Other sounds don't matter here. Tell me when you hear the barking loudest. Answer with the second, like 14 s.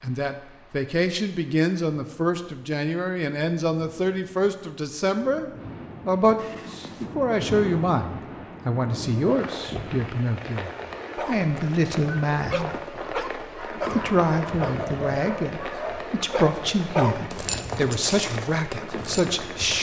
17 s.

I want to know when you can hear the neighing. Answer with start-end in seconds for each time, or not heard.
6.3-7.1.